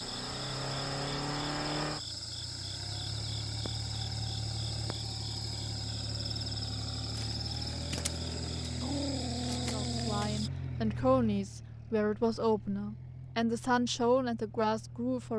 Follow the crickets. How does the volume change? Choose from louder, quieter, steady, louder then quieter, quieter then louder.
steady.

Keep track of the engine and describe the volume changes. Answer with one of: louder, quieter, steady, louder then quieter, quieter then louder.
quieter.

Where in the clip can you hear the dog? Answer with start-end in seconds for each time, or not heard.
8.8-10.3.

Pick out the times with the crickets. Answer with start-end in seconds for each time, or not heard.
0.0-10.5.